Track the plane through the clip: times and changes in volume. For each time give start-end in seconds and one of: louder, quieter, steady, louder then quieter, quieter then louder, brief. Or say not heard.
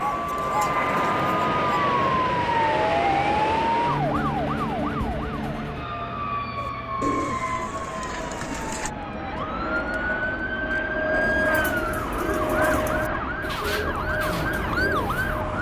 0.0-15.5 quieter then louder.